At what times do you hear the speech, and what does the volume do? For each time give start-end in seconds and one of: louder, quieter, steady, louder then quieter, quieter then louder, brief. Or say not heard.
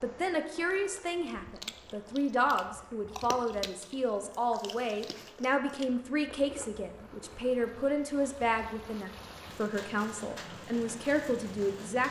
0.0-12.0 steady.